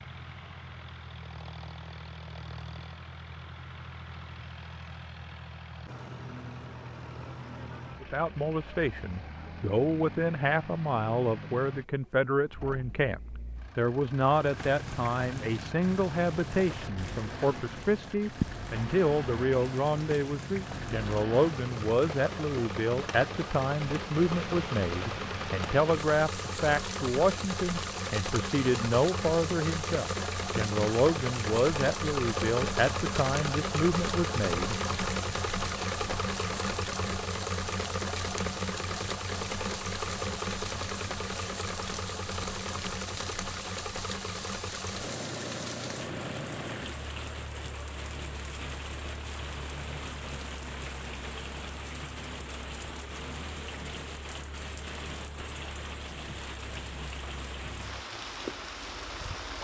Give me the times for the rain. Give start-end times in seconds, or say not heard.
14.2-59.6.